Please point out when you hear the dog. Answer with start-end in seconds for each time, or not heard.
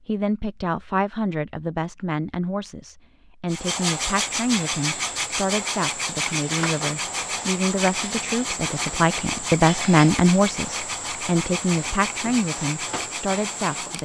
not heard.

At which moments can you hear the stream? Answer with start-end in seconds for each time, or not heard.
not heard.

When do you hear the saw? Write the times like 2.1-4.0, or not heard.
3.5-14.0.